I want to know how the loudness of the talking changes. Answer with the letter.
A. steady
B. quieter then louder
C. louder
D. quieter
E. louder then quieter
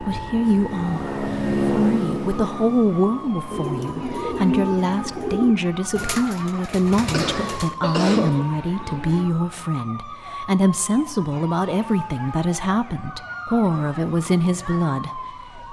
A.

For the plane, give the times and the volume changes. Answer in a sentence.
You can hear the plane from 0.0 to 5.4 s, getting louder then quieter.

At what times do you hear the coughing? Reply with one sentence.
The coughing can be heard from 7.1 to 8.3 s.